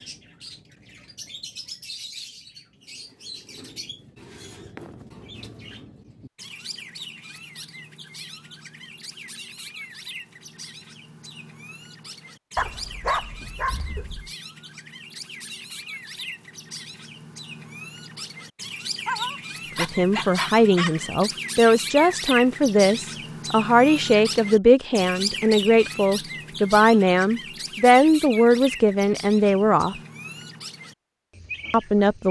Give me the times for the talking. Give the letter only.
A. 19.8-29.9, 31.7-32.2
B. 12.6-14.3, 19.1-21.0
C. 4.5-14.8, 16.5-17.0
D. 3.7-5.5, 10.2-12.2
A.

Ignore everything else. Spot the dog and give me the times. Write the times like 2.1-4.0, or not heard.
12.6-14.3, 19.1-21.0.